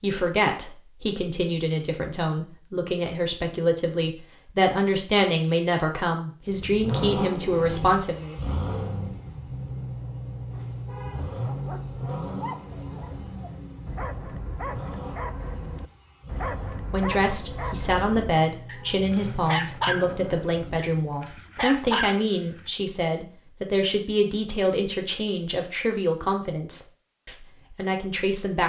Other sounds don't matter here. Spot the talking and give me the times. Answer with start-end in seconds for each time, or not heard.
0.0-8.4, 16.9-28.6.